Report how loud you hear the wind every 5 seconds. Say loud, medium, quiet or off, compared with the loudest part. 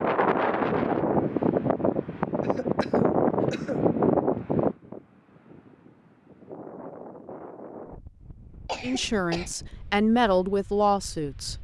loud, quiet, quiet.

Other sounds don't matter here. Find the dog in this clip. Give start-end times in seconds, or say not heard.
not heard.